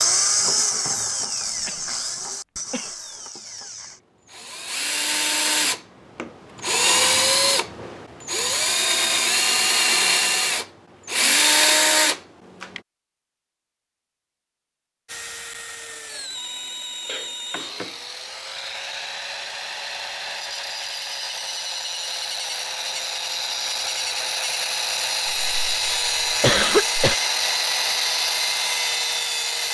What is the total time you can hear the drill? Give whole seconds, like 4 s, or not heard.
27 s.